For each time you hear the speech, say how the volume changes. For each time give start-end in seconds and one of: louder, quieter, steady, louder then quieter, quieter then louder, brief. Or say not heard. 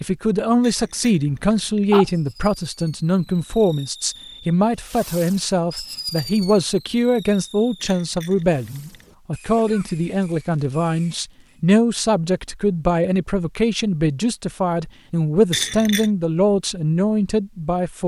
0.0-18.0 steady.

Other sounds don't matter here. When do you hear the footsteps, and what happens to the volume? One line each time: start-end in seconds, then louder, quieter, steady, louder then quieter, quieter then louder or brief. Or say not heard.
not heard.